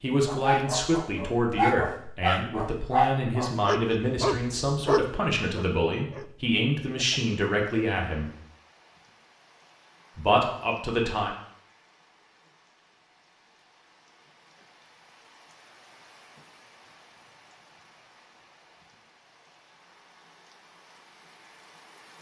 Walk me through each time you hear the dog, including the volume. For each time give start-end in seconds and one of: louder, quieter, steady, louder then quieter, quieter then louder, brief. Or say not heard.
0.2-7.2 quieter.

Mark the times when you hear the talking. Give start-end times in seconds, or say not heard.
0.0-8.3, 10.2-11.3.